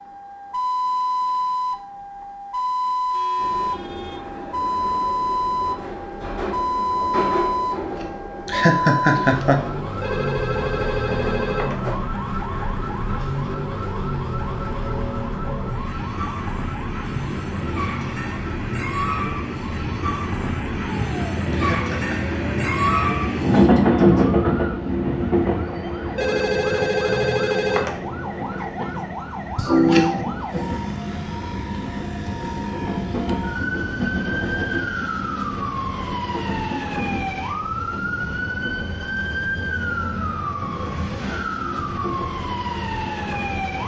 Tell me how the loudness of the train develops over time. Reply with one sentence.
The volume of the train goes up, then down.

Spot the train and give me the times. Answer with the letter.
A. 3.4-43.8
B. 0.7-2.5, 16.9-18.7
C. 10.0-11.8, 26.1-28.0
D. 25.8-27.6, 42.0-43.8
A.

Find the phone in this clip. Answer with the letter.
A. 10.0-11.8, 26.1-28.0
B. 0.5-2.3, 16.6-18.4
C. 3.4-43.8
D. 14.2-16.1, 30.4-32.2
A.